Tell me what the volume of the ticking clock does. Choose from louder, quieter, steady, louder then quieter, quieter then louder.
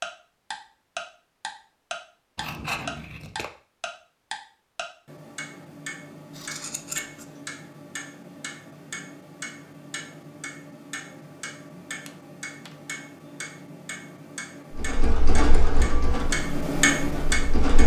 quieter then louder.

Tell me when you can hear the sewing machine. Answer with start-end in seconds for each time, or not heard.
14.7-17.8.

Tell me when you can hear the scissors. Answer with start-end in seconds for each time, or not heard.
2.4-3.5, 6.3-7.3, 12.1-12.8.